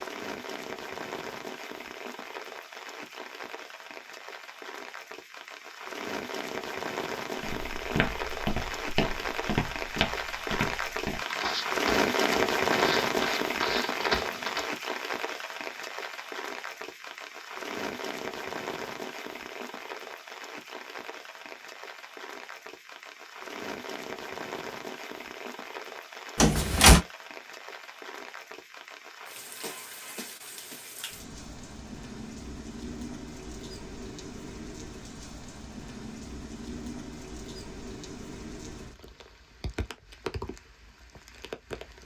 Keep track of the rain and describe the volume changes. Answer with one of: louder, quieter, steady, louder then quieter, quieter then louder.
louder then quieter.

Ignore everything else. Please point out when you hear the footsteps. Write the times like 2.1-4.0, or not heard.
7.4-14.7.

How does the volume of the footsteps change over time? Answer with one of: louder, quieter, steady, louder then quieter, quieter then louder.
steady.